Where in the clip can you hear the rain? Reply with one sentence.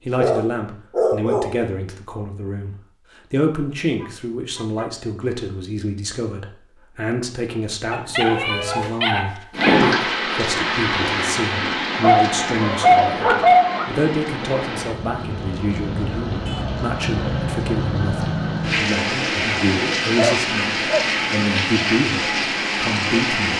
You can hear the rain from 9.5 to 23.5 s.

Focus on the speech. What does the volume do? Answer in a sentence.
The volume of the speech stays about the same.